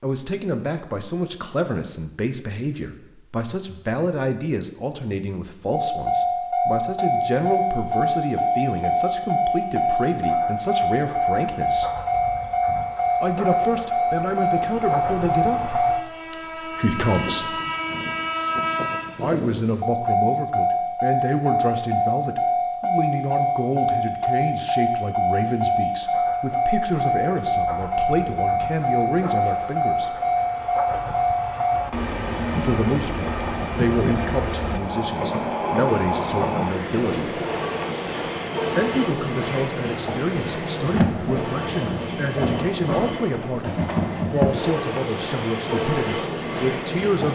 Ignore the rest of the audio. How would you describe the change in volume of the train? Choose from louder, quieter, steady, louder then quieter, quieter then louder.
steady.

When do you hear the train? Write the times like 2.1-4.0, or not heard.
5.7-47.3.